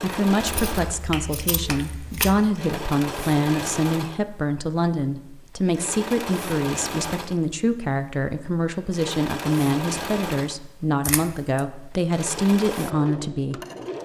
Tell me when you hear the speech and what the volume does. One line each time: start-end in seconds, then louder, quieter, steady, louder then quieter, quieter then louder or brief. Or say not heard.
0.0-13.6 steady.